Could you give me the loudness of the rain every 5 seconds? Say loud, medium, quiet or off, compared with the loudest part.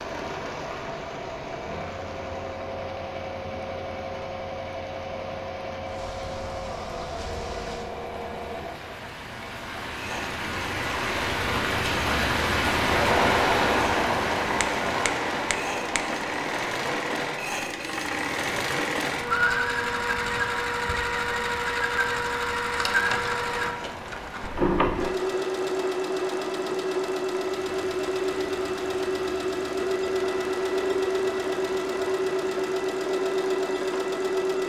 quiet, quiet, loud, medium, quiet, quiet, quiet.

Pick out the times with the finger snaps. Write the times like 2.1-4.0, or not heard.
14.6-16.1.